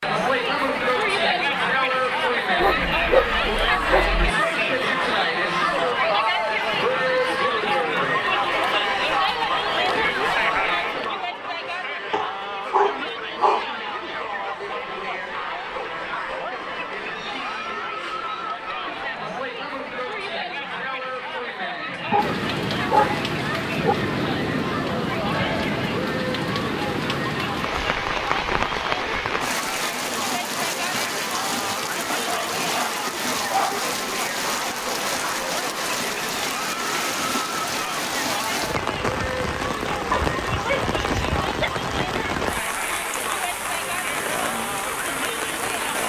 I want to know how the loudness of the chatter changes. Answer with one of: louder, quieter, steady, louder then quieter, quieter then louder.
quieter.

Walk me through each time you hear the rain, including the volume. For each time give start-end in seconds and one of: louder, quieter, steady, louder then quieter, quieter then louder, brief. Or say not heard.
22.1-46.0 steady.